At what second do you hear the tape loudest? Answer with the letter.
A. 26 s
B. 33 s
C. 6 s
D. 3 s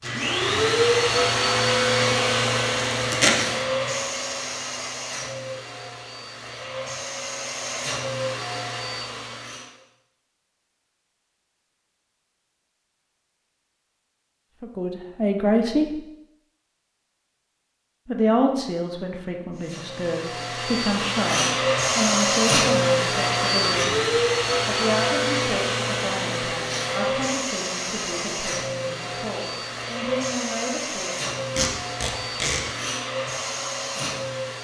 D.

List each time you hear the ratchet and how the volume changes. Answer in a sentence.
The ratchet can't be heard in this clip.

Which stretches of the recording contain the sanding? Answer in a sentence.
The sanding can't be heard in this clip.